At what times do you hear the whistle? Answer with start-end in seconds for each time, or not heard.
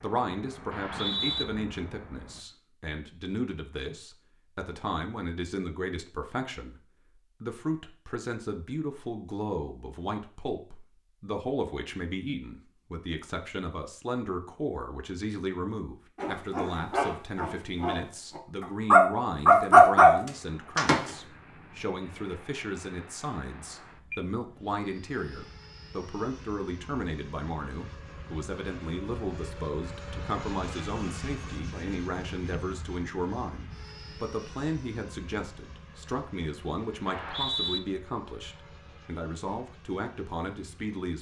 0.7-1.4, 37.0-37.8.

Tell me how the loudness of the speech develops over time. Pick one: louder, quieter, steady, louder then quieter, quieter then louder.
steady.